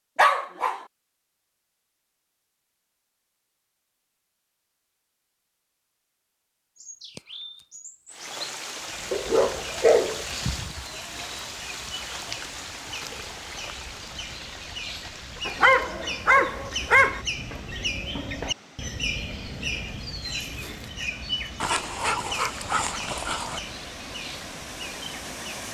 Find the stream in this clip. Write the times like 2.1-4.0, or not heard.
8.1-25.7.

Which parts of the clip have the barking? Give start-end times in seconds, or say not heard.
0.1-0.8, 9.1-10.8, 15.4-17.2, 21.6-23.6.